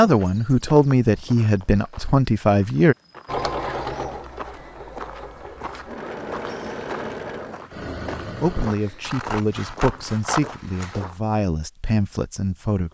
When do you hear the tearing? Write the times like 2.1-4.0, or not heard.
not heard.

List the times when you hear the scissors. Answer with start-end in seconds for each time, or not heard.
9.0-11.1.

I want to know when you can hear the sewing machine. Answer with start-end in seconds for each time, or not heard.
3.2-8.8.